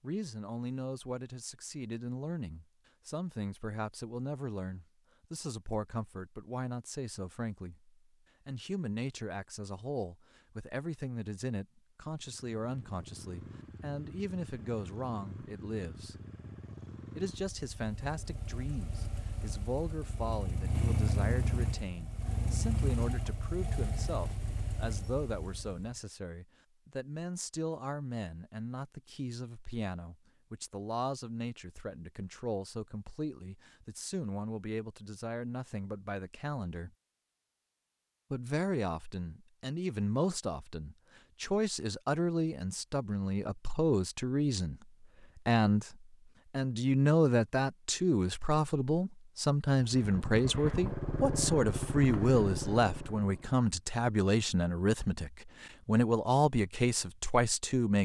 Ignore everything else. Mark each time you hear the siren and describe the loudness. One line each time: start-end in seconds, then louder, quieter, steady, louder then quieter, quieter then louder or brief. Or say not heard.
not heard.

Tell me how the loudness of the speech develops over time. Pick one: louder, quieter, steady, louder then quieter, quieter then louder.
louder.